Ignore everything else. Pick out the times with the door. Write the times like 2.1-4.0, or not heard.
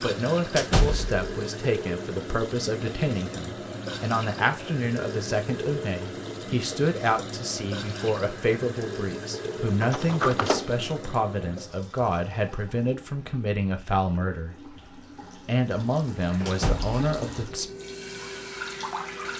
0.6-1.2, 9.8-10.8, 16.4-17.0.